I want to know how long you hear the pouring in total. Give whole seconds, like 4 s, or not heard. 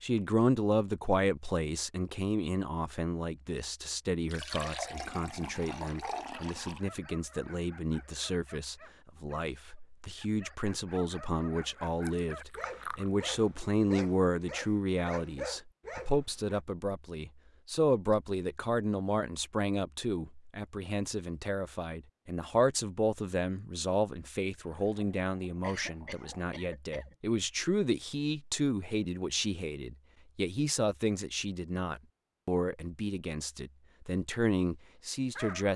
6 s.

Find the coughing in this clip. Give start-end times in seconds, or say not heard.
25.6-27.1.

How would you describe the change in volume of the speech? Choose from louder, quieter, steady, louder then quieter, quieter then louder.
steady.